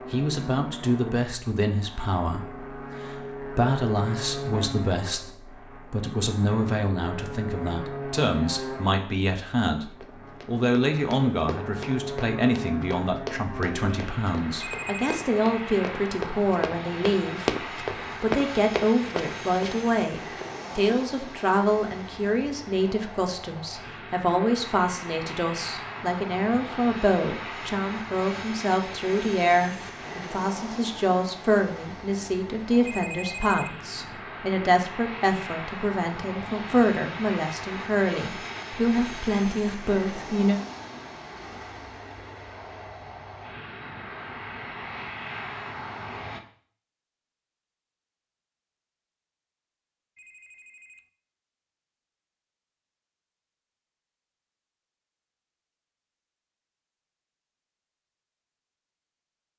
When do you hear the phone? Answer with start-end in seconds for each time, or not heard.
14.6-15.1, 32.9-33.8, 50.1-51.1.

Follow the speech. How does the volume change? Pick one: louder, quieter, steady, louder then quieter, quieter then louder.
steady.